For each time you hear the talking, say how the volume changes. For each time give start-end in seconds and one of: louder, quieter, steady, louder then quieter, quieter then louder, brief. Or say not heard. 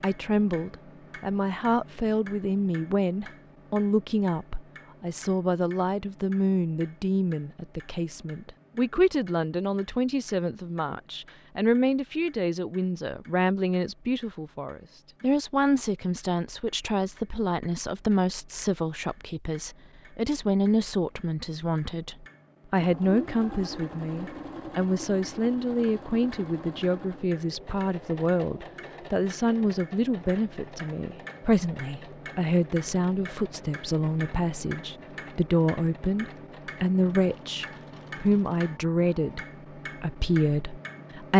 0.0-41.3 steady.